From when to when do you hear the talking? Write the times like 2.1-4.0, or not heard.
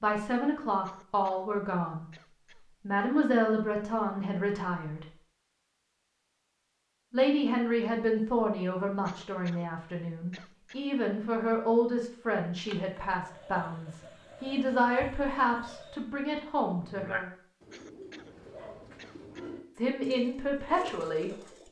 0.0-2.0, 2.9-5.0, 7.1-17.3, 19.8-21.3.